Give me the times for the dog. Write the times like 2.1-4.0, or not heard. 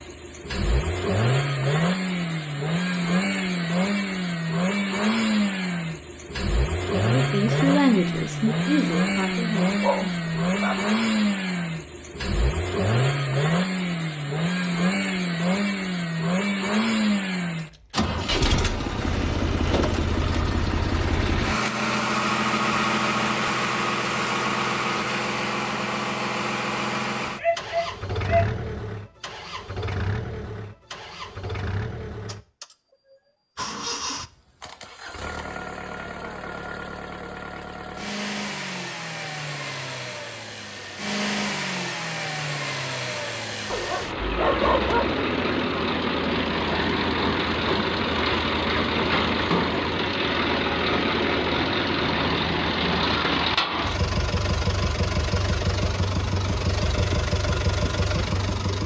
9.8-10.8, 27.4-28.5, 43.7-45.2.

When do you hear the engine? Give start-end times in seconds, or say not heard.
0.0-58.8.